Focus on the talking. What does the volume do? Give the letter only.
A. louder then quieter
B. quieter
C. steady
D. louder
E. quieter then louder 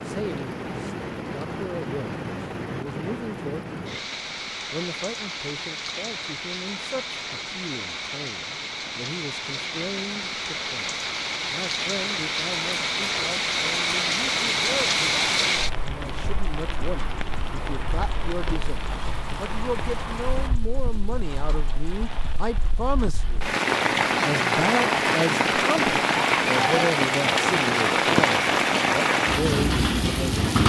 D.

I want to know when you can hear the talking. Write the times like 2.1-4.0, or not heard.
0.0-4.0, 4.7-10.9, 11.5-23.4, 24.2-30.4.